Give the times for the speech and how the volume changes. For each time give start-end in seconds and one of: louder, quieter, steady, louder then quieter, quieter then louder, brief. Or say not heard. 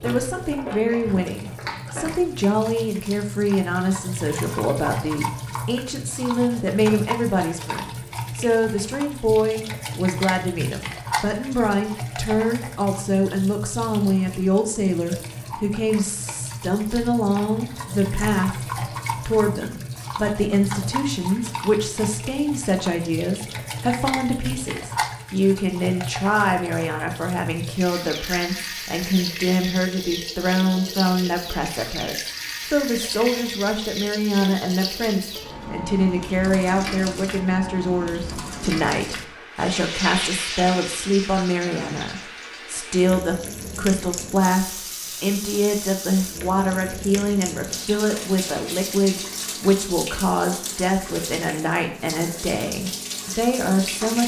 0.0-54.2 steady.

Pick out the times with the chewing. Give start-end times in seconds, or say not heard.
0.0-2.1.